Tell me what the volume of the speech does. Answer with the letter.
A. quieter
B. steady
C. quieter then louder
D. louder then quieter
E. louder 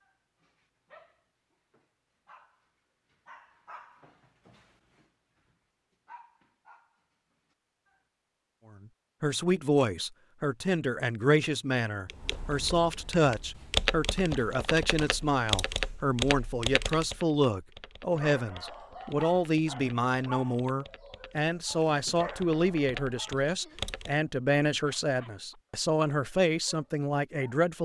B.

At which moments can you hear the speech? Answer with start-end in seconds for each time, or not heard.
9.2-27.8.